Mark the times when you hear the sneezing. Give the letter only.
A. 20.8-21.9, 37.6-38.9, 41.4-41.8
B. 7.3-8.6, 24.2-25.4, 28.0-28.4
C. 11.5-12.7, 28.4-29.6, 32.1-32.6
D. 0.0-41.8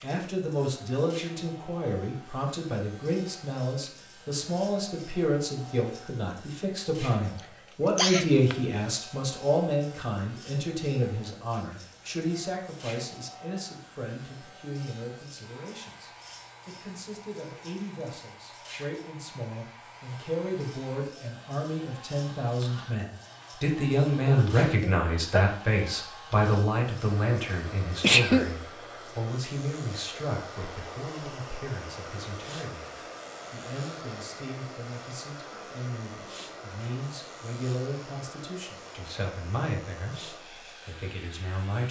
B.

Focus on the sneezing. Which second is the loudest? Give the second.
28 s.